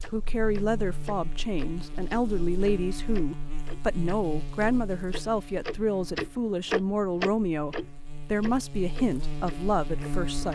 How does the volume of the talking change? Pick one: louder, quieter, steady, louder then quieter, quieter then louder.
steady.